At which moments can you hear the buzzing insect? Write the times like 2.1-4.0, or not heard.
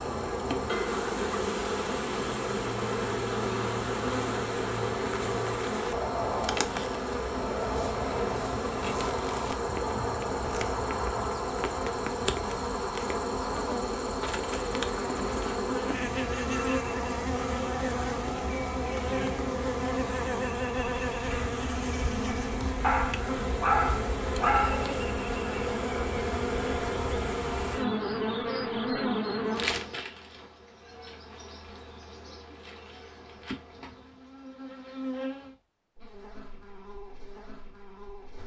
0.0-38.4.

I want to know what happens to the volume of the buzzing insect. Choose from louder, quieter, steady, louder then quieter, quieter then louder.
quieter.